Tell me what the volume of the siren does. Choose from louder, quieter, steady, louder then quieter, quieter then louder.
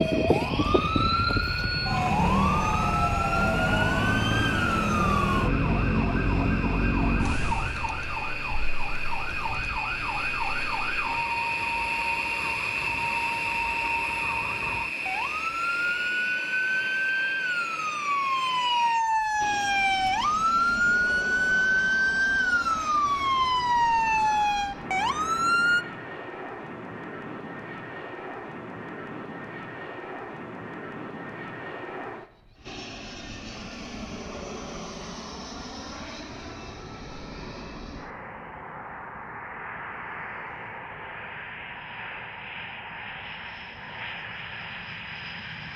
quieter then louder.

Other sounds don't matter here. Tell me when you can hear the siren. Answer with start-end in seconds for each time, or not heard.
0.0-25.9.